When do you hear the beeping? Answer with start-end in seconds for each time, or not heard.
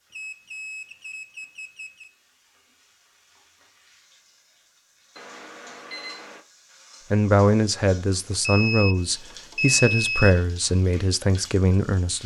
0.1-2.1, 5.2-6.4, 8.4-10.4.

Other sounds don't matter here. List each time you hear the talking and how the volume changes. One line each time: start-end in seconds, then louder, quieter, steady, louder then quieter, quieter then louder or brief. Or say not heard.
7.1-12.2 steady.